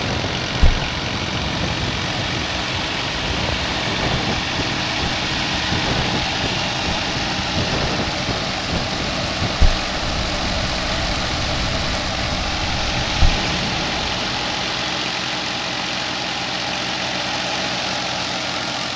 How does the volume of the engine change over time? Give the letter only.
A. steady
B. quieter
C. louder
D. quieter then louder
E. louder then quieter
A.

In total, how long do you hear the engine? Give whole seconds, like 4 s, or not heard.
19 s.